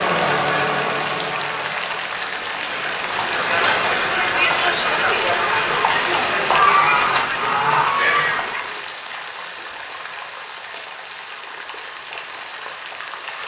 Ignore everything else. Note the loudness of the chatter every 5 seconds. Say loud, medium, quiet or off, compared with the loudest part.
loud, loud, off.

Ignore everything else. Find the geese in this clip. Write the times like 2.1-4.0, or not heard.
6.5-8.4.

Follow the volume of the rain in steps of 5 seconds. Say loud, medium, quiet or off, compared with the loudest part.
loud, loud, medium.